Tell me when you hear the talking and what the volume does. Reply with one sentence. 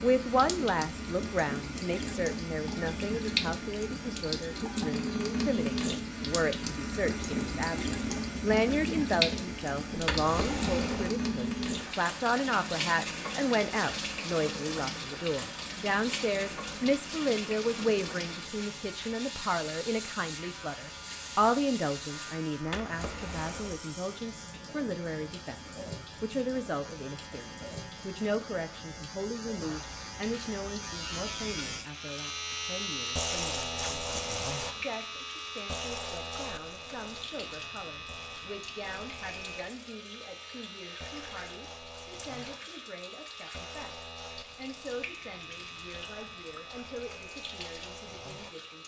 The talking can be heard from 0.0 to 48.8 s, getting quieter.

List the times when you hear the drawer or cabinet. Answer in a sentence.
The drawer or cabinet can be heard from 9.9 to 11.2 s, from 22.6 to 23.8 s and from 34.0 to 34.9 s.